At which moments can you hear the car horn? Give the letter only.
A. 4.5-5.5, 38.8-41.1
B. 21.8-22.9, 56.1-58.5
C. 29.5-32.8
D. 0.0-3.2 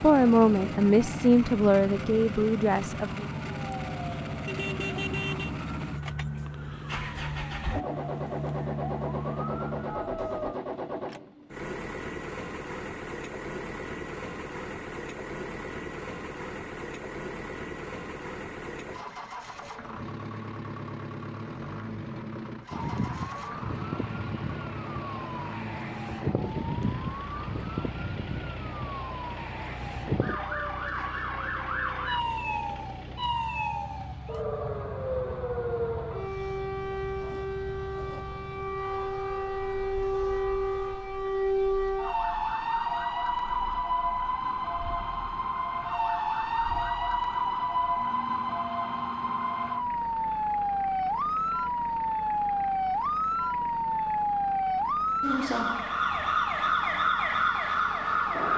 A.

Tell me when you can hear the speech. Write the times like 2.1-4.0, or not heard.
0.0-3.2.